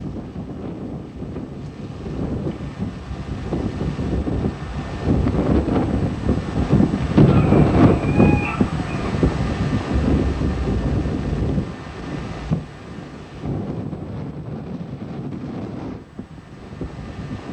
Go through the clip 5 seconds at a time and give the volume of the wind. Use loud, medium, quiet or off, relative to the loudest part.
medium, loud, medium, quiet.